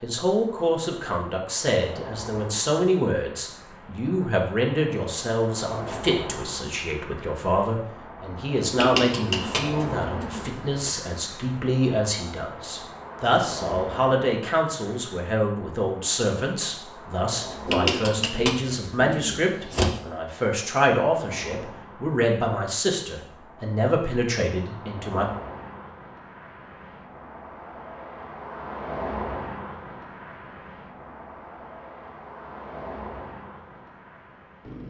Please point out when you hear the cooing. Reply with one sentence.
The cooing can be heard from 8.8 to 10.9 s and from 17.6 to 19.9 s.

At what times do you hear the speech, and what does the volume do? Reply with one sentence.
You can hear the speech from 0.0 to 25.2 s, at a steady volume.